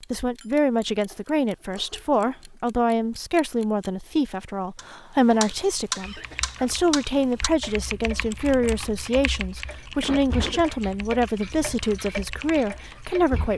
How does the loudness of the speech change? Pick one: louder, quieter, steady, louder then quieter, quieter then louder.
steady.